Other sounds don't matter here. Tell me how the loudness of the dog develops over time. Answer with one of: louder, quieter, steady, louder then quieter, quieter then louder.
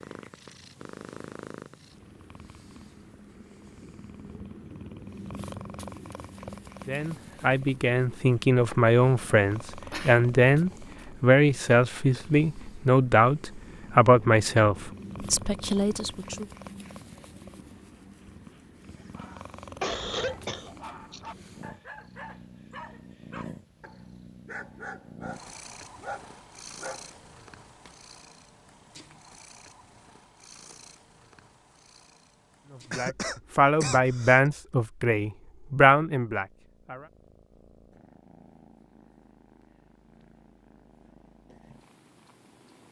louder.